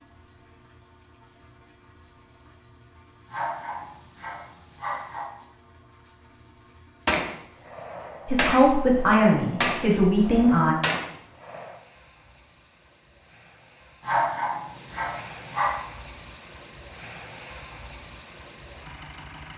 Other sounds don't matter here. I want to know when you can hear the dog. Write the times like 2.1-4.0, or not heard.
3.3-5.2, 14.0-15.8.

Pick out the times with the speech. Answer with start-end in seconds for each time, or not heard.
8.2-10.8.